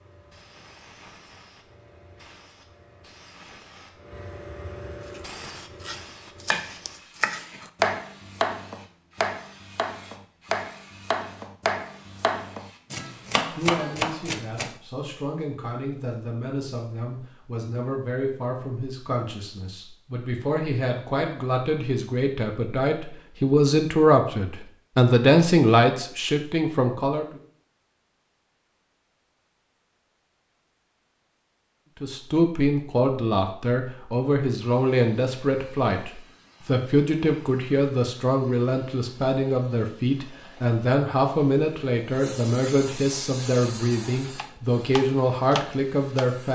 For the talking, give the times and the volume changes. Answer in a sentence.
You can hear the talking from 13.6 to 27.4 s, getting louder; and from 32.0 to 46.4 s, at a steady volume.